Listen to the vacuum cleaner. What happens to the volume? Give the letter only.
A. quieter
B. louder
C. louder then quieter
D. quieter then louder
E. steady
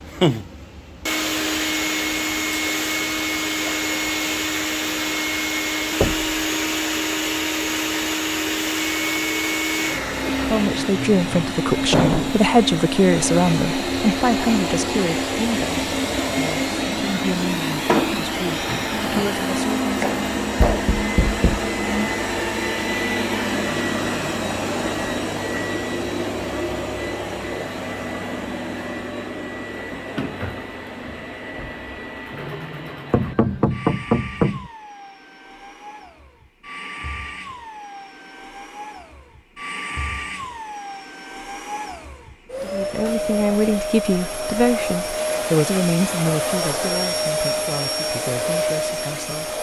D.